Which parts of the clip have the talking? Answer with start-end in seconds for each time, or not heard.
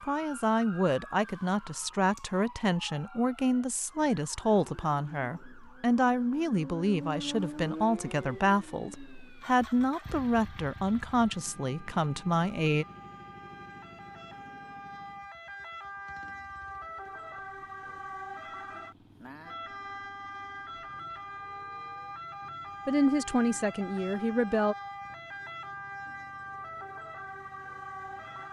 0.0-12.8, 22.9-24.8.